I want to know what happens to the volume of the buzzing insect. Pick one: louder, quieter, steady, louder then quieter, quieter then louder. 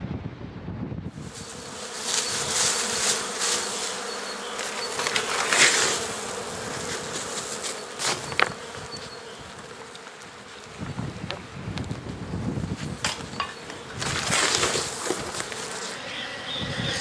quieter then louder.